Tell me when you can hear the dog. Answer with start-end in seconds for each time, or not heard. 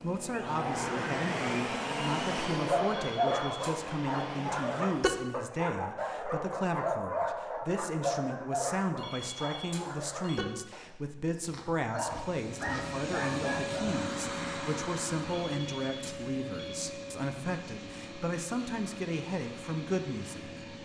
2.5-14.1.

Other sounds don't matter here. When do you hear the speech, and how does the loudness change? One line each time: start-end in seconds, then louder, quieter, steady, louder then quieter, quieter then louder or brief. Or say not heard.
0.0-20.5 steady.